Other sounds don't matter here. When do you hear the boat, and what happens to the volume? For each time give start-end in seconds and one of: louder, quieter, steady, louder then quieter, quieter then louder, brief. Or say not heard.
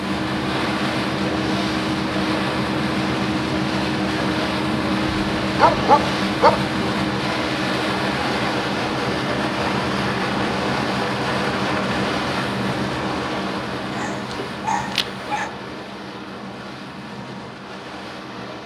0.0-18.6 quieter.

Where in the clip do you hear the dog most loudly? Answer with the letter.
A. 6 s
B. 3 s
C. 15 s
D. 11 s
A.